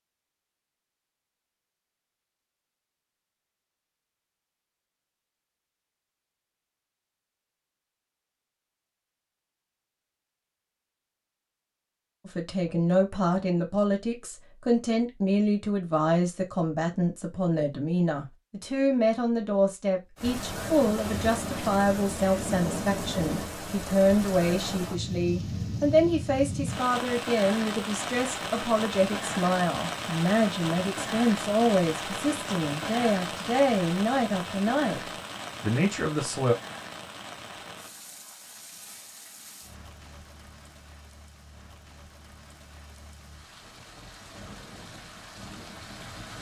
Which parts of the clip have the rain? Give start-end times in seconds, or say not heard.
20.1-46.3.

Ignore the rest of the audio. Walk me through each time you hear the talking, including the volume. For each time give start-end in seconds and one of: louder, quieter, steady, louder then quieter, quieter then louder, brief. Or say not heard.
12.2-36.5 steady.